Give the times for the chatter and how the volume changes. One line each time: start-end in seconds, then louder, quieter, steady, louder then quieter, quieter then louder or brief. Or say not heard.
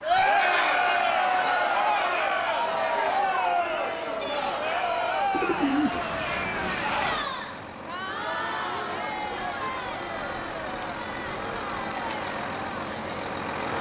0.0-13.7 quieter.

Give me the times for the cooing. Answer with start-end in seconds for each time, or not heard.
5.3-7.2.